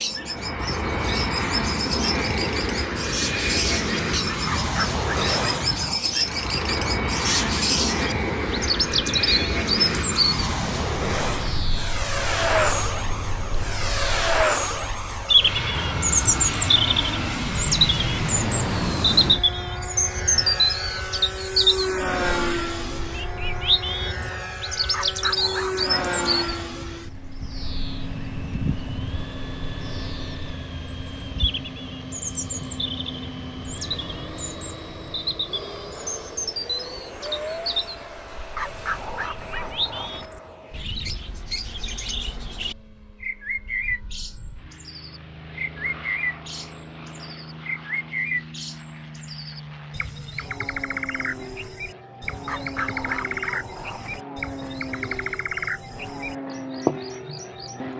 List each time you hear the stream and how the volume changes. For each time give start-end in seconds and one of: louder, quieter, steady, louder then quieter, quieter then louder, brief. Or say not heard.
not heard.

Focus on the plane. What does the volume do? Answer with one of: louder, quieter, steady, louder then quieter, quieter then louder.
quieter.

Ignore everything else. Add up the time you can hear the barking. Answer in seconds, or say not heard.
7 s.